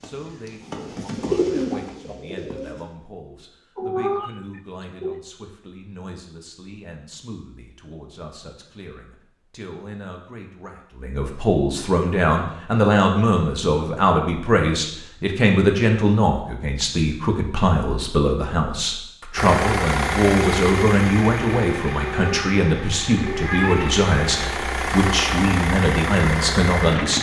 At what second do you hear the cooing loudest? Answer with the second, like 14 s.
1 s.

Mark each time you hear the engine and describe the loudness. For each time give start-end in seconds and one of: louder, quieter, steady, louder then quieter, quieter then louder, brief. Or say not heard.
19.4-27.1 quieter then louder.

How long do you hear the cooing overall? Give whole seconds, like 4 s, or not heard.
3 s.